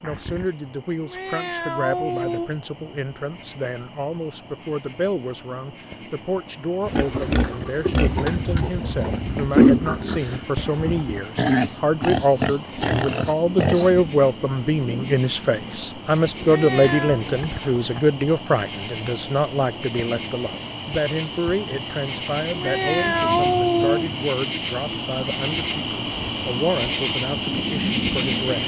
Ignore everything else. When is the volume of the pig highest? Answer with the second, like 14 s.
10 s.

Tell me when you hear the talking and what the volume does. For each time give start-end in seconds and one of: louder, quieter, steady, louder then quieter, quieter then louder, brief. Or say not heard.
0.0-28.6 louder then quieter.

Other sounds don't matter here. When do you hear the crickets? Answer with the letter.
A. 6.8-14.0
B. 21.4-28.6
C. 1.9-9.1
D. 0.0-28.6
D.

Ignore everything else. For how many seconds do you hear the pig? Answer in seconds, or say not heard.
7 s.